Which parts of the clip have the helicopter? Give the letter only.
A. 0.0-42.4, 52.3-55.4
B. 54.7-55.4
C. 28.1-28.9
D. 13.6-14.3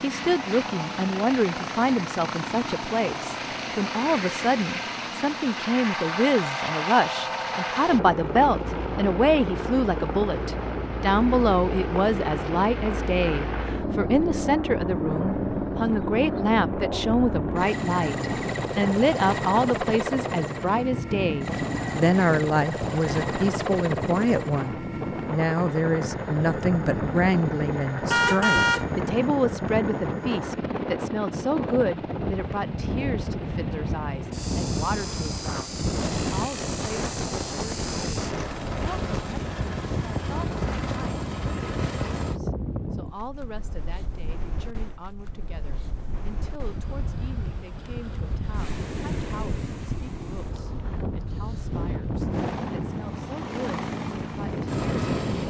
A.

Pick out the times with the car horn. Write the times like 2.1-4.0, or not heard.
28.1-28.9.